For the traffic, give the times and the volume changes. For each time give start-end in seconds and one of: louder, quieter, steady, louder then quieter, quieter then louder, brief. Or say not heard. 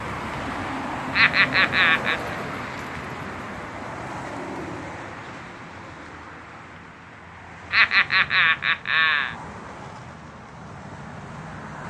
0.0-11.8 quieter.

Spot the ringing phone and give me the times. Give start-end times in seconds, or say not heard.
not heard.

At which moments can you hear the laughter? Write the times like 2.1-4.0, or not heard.
1.1-2.2, 7.7-9.3.